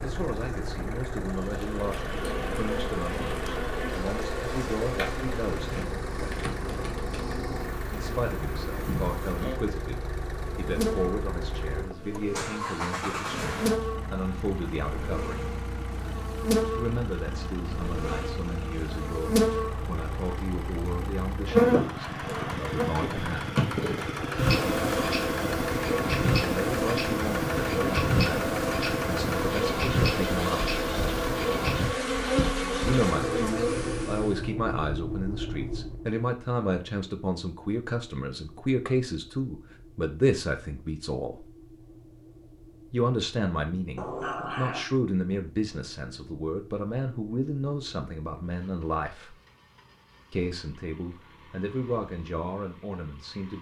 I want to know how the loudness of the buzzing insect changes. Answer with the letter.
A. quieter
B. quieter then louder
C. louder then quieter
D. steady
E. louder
E.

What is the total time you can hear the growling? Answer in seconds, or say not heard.
2 s.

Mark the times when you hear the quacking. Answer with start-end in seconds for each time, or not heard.
not heard.